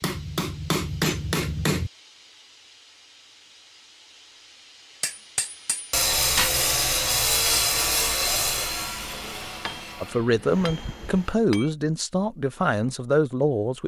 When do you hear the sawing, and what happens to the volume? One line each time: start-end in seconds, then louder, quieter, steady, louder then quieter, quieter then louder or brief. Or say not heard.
5.9-11.3 quieter.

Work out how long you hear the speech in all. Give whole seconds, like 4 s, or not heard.
4 s.